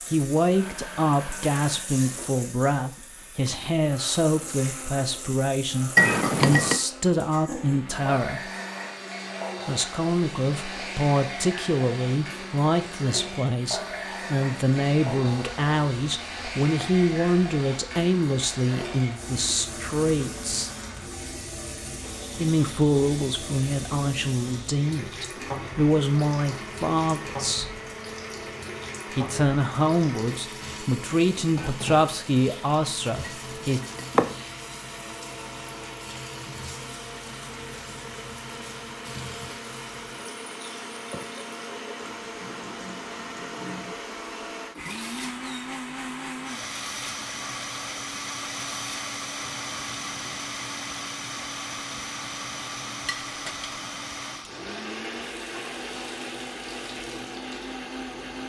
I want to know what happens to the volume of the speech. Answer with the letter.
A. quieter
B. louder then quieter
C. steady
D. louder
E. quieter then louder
C.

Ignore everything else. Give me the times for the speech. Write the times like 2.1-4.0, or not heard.
0.1-8.5, 9.7-20.7, 22.4-27.7, 29.1-33.8.